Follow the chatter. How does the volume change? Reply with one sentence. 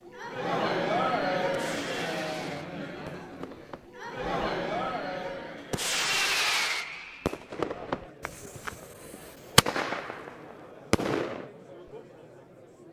The volume of the chatter goes down.